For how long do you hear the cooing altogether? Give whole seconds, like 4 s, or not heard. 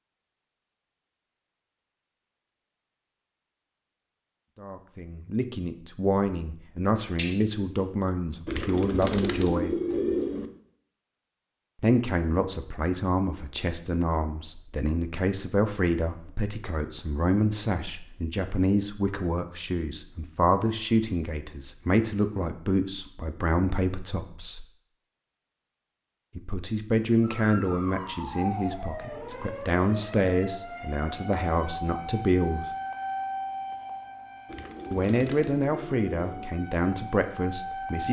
4 s.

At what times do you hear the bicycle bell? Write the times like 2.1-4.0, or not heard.
7.2-7.9.